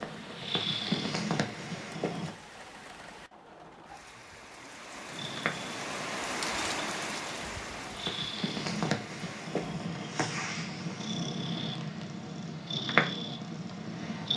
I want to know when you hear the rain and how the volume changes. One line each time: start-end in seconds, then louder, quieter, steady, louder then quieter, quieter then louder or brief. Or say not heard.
0.0-9.8 louder then quieter.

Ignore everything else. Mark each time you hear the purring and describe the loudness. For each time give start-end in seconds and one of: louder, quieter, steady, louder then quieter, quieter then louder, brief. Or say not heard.
0.0-2.4 brief
5.1-14.3 louder.